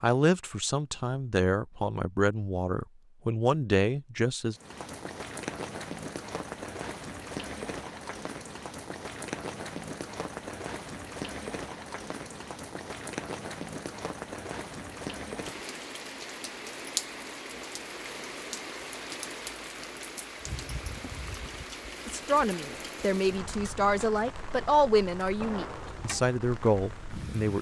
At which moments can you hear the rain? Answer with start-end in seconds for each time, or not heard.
4.5-27.5.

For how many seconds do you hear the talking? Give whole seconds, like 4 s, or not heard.
10 s.